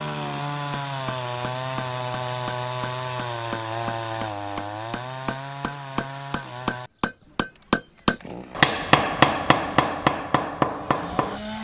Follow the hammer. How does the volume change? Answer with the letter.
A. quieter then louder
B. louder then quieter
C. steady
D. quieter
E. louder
E.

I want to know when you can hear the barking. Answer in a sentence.
You can't hear the barking here.